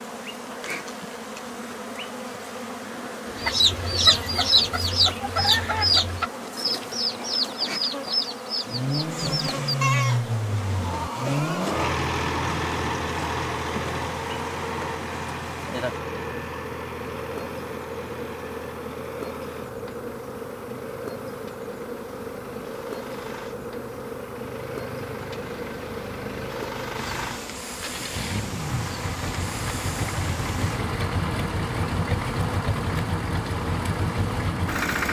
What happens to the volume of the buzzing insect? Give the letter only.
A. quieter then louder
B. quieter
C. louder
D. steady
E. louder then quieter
D.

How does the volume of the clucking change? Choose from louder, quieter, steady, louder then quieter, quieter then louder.
quieter.